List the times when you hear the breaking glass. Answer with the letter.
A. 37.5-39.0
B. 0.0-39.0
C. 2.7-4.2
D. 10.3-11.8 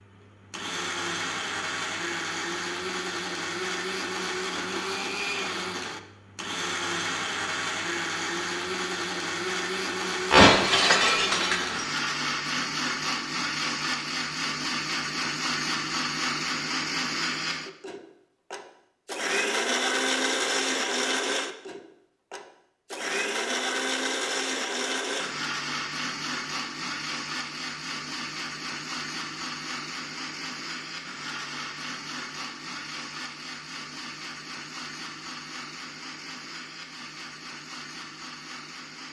D.